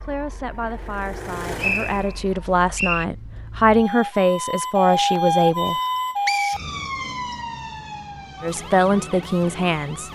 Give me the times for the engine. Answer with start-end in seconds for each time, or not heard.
0.0-2.2.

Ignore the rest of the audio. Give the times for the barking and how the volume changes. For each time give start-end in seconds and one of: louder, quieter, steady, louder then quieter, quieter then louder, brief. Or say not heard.
not heard.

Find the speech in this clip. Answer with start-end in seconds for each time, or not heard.
0.0-5.8, 8.4-10.1.